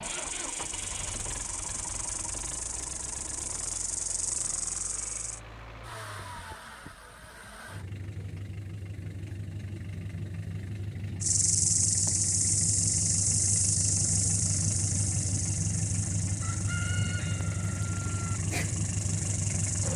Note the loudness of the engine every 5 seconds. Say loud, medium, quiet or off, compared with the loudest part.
medium, medium, loud, loud.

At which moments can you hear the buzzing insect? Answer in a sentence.
You can hear the buzzing insect from 0.0 to 5.4 s and from 11.2 to 19.9 s.